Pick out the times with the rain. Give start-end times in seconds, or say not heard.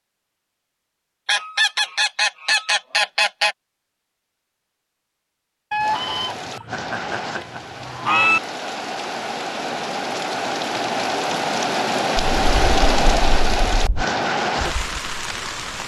5.8-15.8.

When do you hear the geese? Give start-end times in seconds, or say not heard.
1.2-3.5, 5.7-8.4, 12.3-14.1.